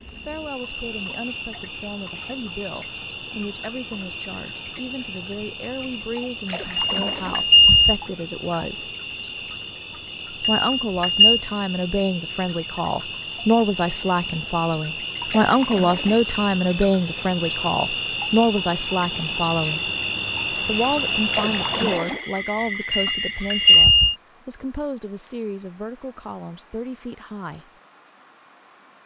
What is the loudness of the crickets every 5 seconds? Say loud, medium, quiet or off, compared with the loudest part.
medium, medium, medium, loud, loud, quiet.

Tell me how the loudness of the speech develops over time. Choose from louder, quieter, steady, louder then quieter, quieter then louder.
louder then quieter.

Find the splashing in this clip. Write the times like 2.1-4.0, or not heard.
6.5-7.5, 15.2-16.2, 21.3-22.3.